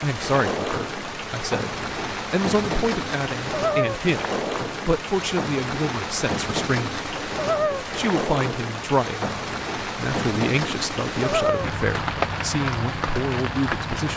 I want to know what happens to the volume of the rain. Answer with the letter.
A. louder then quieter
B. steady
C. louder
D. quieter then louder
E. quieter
B.